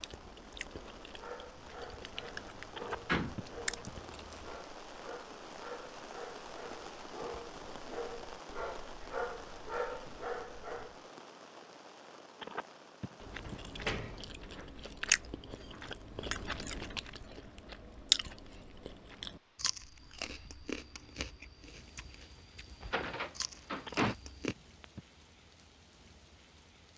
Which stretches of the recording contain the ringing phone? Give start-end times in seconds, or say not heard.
2.8-3.9, 12.4-13.6, 23.9-25.0.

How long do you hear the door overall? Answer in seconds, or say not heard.
3 s.